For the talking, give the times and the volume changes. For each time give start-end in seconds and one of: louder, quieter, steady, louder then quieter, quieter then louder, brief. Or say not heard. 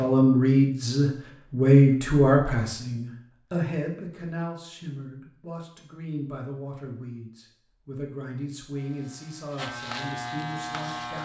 0.0-11.2 quieter.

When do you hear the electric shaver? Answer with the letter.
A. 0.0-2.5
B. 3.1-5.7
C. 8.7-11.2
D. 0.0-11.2
C.